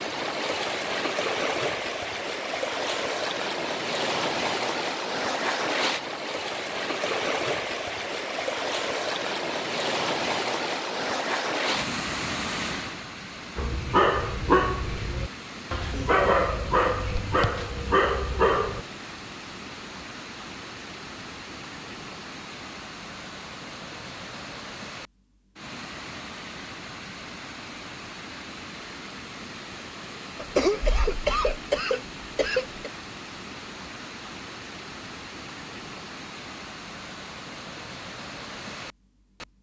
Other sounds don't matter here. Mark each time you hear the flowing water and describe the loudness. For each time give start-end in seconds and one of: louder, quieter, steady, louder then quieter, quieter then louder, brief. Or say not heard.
0.0-39.5 quieter.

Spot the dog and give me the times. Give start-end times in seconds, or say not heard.
13.6-18.8.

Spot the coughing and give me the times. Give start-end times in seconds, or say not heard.
30.4-32.9.